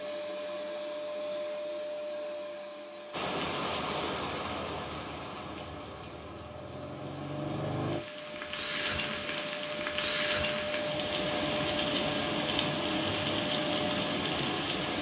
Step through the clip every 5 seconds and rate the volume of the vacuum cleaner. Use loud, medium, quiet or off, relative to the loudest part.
loud, medium, loud.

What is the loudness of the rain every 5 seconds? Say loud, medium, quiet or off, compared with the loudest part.
loud, medium, loud.